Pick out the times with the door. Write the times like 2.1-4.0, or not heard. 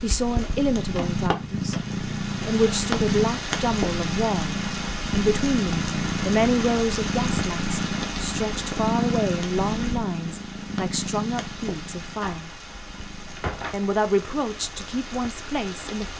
0.8-1.9, 12.2-13.8.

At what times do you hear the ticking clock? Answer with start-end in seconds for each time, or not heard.
not heard.